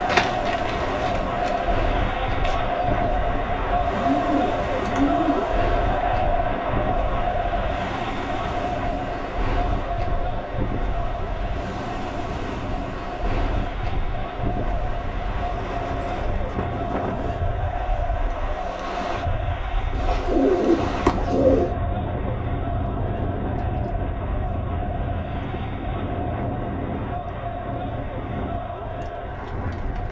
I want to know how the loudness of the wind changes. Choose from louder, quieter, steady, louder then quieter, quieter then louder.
steady.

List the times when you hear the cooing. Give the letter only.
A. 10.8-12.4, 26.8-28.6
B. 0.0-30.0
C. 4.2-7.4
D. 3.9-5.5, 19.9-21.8
D.